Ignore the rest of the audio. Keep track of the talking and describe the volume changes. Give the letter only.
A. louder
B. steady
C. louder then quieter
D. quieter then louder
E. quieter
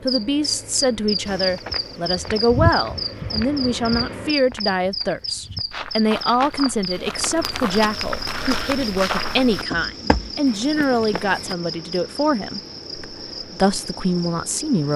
B.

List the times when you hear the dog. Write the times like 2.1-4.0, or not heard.
not heard.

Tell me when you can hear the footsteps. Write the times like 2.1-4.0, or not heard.
1.2-11.6.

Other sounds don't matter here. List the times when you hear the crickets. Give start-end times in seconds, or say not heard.
0.0-14.9.